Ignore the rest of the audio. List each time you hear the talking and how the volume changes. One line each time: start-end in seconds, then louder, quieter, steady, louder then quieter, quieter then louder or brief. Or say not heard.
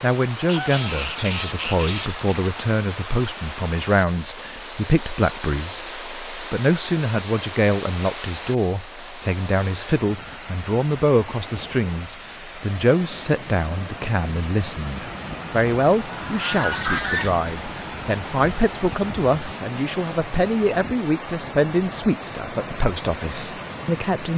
0.0-24.3 steady.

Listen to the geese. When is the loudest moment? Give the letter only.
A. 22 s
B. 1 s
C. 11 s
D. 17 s
D.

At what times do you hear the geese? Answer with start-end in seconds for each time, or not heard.
0.5-2.5, 16.1-17.4.